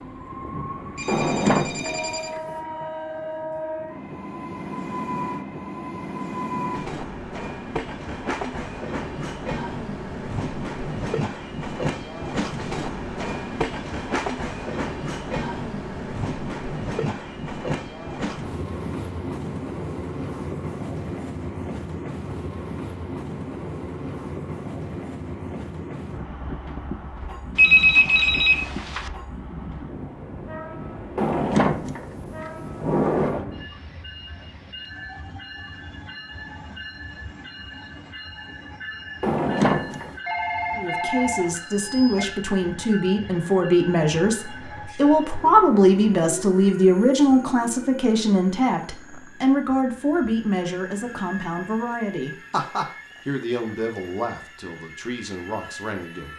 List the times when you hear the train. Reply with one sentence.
You can hear the train from 0.0 to 56.3 s.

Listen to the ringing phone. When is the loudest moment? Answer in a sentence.
The loudest moment of the ringing phone is at 28 seconds.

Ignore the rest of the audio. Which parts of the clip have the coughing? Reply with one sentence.
The coughing can't be heard in this clip.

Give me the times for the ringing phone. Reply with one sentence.
You can hear the ringing phone from 0.9 to 2.4 s, from 27.6 to 29.1 s and from 40.2 to 42.2 s.